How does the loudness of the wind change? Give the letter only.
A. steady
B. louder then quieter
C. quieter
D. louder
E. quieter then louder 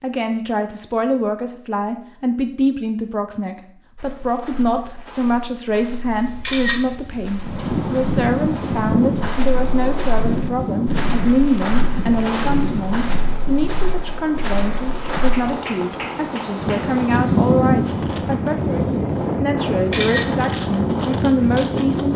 E.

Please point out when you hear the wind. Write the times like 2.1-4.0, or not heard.
7.4-22.1.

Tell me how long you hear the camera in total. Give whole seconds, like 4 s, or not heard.
2 s.